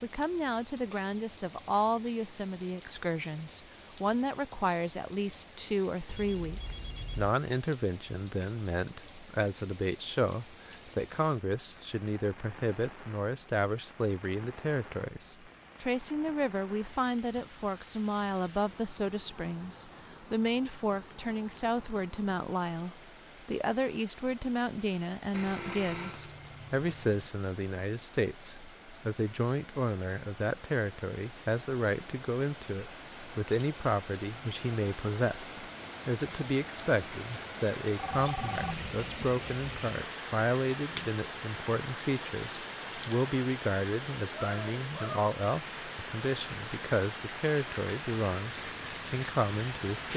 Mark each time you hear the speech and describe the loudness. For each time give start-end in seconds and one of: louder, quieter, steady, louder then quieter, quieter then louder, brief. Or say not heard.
0.0-50.1 steady.